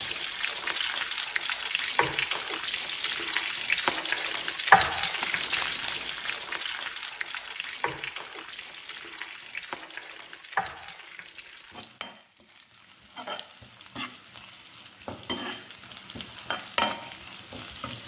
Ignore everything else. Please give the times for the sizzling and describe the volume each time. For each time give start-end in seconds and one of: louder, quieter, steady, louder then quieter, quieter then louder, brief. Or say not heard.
0.0-18.0 quieter then louder.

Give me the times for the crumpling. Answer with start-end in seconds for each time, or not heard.
5.2-6.5.